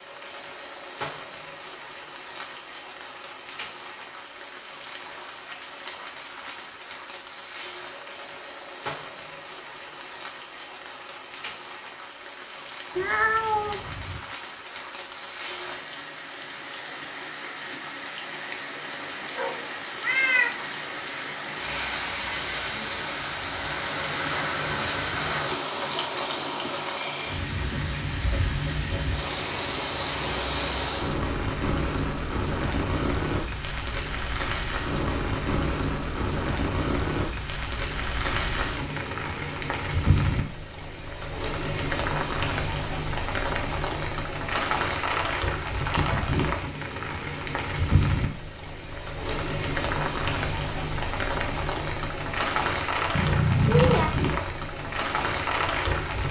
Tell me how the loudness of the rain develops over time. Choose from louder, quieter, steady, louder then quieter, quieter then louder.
louder.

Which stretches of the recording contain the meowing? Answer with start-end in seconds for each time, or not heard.
12.9-14.2, 19.4-20.6, 53.1-54.1.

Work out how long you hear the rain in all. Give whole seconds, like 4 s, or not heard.
56 s.